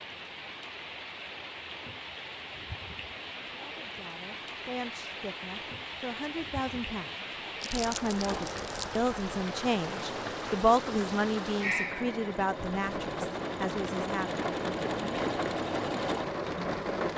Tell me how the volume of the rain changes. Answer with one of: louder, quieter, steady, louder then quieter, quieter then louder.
louder.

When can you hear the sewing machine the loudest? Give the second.
16 s.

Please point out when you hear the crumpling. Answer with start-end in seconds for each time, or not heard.
7.6-9.0.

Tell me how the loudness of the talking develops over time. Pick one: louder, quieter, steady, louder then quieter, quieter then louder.
louder then quieter.